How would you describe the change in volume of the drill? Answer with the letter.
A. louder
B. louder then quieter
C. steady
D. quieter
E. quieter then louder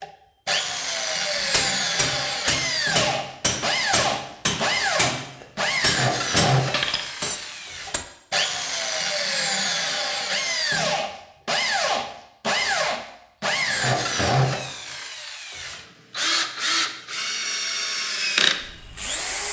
C.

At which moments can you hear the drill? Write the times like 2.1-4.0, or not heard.
0.0-19.4.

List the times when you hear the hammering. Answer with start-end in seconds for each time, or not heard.
1.4-8.1.